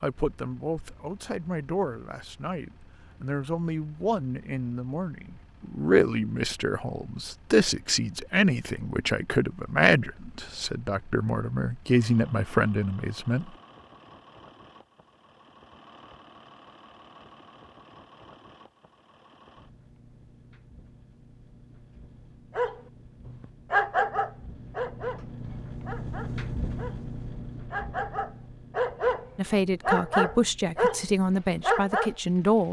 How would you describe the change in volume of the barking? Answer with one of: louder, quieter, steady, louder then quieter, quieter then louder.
quieter then louder.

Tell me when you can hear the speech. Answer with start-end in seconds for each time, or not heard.
0.0-13.5, 29.4-32.6.